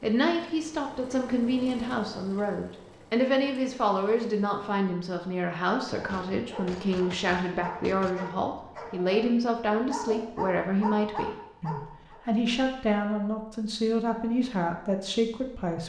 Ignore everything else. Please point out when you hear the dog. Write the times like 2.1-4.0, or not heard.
5.9-12.2.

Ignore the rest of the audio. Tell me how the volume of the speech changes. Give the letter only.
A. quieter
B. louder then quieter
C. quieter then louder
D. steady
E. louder
D.